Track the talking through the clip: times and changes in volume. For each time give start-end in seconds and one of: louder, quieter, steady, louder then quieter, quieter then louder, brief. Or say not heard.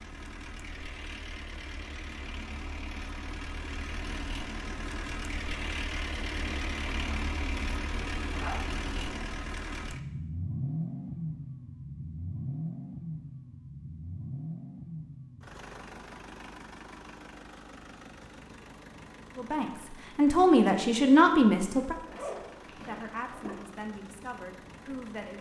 19.4-25.3 quieter.